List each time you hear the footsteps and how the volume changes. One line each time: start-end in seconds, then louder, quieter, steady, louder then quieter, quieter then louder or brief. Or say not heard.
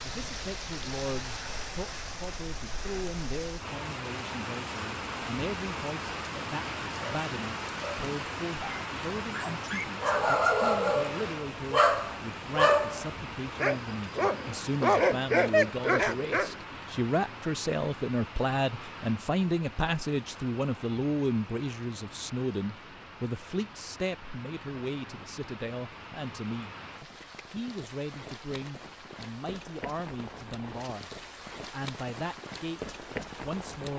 not heard.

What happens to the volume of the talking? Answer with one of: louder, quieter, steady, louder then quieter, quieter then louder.
louder then quieter.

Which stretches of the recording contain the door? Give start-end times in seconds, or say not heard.
not heard.